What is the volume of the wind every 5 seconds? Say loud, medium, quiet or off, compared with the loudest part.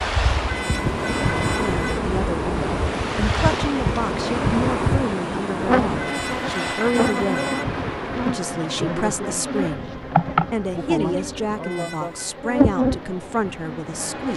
loud, medium, quiet.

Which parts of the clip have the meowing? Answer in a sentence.
The meowing can be heard from 0.5 to 2.0 s, from 6.0 to 7.7 s and from 11.6 to 12.3 s.